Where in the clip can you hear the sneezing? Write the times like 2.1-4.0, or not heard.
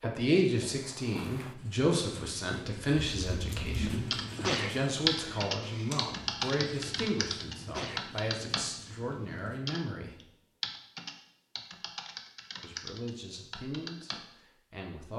4.3-4.8, 7.7-8.1.